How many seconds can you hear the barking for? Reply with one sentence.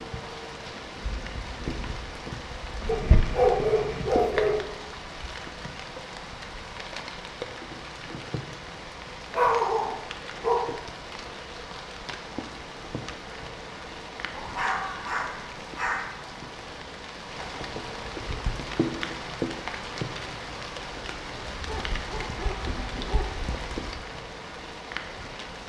You can hear the barking for 7 seconds altogether.